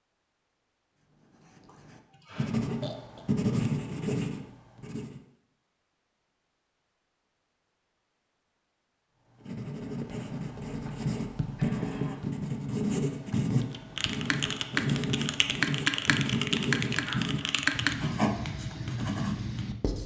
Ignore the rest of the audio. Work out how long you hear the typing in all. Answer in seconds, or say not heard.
6 s.